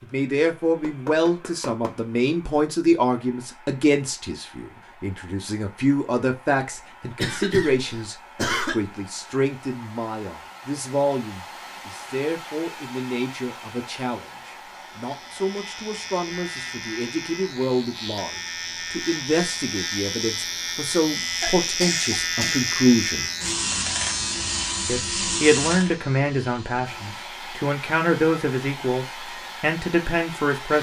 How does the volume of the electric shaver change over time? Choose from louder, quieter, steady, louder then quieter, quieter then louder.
louder then quieter.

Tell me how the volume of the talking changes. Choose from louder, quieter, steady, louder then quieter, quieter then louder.
quieter then louder.